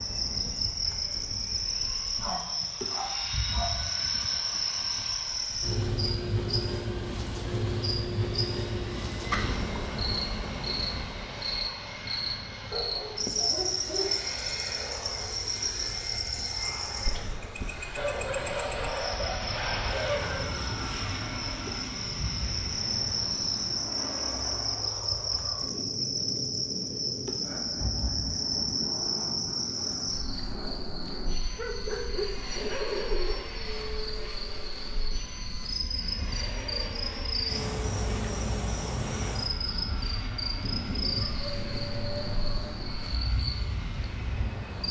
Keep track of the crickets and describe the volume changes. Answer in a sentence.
The loudness of the crickets stays about the same.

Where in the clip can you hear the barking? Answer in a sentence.
You can hear the barking from 2.2 to 3.8 s, from 12.7 to 14.3 s, from 17.9 to 20.6 s, from 31.6 to 33.4 s and from 40.6 to 42.7 s.